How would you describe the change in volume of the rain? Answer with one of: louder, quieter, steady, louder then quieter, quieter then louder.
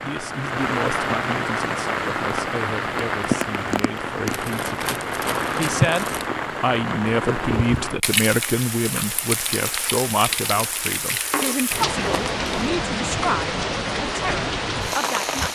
steady.